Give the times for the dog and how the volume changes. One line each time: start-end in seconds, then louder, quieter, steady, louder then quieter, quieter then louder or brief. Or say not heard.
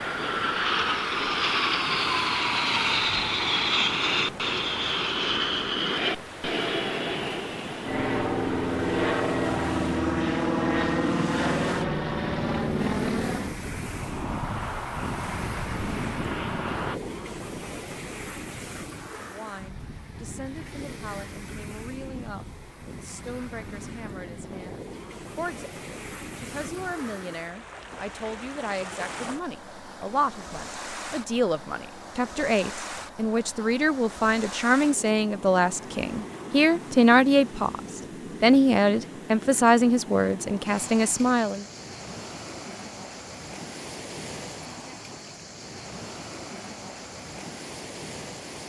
not heard.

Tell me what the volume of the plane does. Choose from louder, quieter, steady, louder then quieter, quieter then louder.
quieter.